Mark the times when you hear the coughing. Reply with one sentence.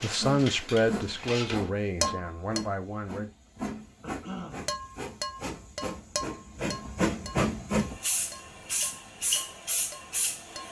You can hear the coughing from 4.0 to 4.7 s.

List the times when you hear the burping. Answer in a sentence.
The burping can't be heard in this clip.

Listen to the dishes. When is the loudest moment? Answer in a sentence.
The volume of the dishes peaks at 2 seconds.